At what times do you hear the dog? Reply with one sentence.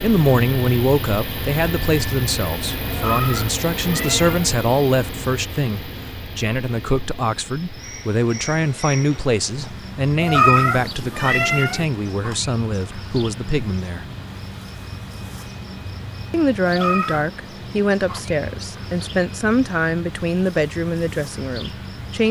You can't hear the dog here.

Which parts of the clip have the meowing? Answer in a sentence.
The meowing can be heard from 2.9 to 4.5 s, from 10.2 to 11.8 s and from 16.6 to 17.2 s.